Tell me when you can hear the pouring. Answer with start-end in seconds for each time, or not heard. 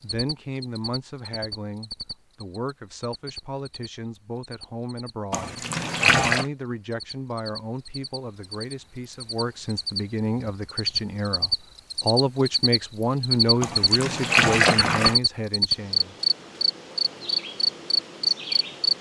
5.3-6.5, 13.6-15.2.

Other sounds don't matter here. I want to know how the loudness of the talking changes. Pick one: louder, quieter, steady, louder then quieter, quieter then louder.
louder.